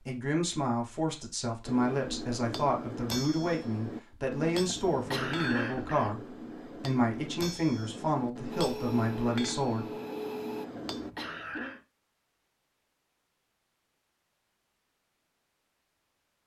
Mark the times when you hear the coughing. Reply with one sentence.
You can hear the coughing from 4.7 to 6.2 s and from 10.7 to 11.8 s.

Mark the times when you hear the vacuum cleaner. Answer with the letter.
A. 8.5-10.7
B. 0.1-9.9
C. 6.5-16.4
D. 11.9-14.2
A.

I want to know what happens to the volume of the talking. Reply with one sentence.
The volume of the talking stays about the same.